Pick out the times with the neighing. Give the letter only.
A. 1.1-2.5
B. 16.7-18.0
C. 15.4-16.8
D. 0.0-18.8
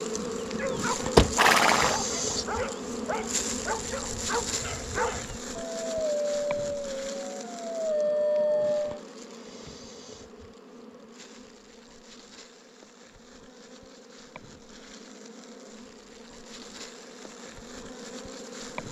A.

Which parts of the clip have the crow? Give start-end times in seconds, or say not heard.
not heard.